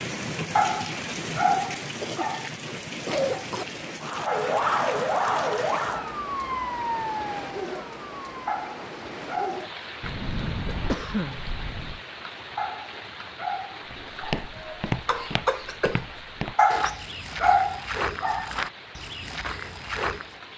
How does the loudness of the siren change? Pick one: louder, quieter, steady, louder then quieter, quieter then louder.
quieter.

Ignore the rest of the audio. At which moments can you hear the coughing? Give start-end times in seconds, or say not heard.
1.6-3.6, 10.0-12.0, 14.6-16.0.